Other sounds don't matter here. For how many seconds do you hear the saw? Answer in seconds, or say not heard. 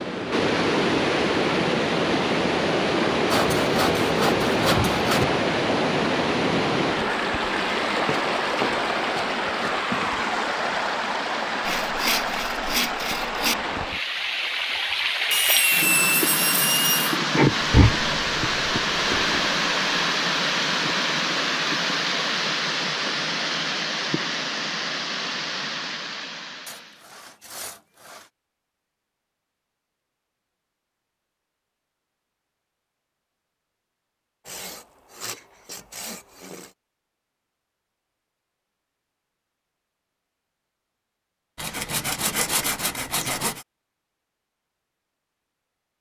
12 s.